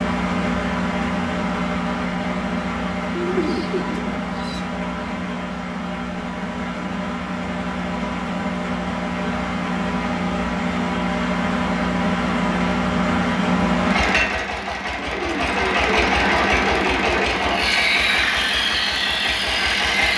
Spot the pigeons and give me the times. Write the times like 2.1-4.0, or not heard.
3.1-4.8, 14.9-17.6.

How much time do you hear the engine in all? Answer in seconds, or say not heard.
20 s.